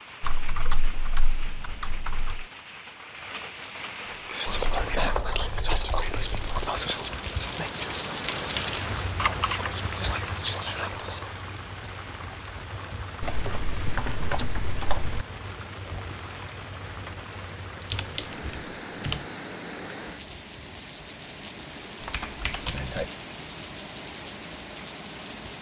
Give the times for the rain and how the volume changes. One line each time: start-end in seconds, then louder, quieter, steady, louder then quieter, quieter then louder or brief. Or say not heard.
0.0-25.5 louder then quieter.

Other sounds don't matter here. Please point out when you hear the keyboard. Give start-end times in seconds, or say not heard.
0.2-2.5, 4.5-6.7, 9.2-10.6, 13.2-15.2, 17.9-19.2, 22.0-23.1.